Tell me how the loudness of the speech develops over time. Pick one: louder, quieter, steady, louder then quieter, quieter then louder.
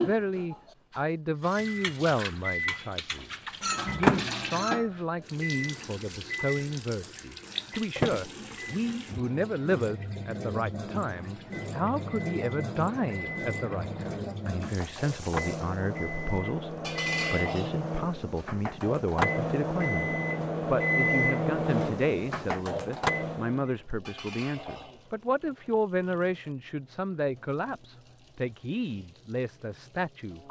steady.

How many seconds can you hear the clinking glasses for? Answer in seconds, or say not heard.
5 s.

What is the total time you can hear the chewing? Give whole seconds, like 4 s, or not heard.
not heard.